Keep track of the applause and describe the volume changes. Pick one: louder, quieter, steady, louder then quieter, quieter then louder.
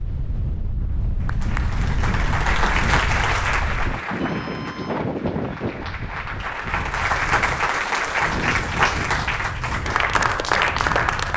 quieter then louder.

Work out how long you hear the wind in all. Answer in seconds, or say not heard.
11 s.